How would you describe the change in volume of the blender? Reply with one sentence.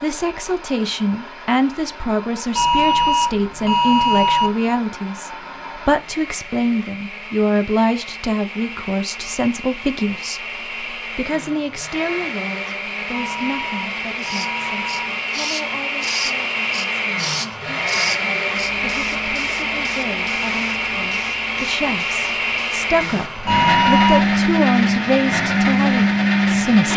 The loudness of the blender goes up.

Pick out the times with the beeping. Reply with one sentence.
You can hear the beeping from 2.5 to 4.5 s, from 13.1 to 15.1 s and from 23.4 to 24.3 s.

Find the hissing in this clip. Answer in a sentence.
You can hear the hissing from 14.2 to 23.4 s.